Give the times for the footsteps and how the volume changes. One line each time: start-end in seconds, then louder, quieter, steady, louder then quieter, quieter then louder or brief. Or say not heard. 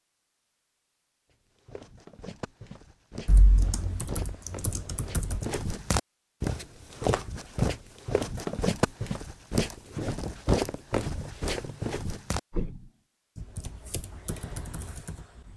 1.3-12.9 louder.